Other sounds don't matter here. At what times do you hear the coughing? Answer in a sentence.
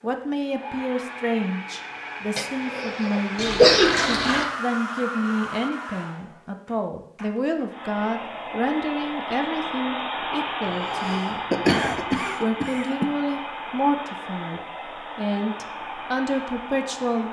You can hear the coughing from 2.4 to 4.0 s and from 10.8 to 13.1 s.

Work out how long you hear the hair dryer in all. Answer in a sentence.
The hair dryer can be heard for 17 seconds in total.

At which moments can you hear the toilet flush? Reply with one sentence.
The toilet flush can be heard from 3.4 to 4.5 s.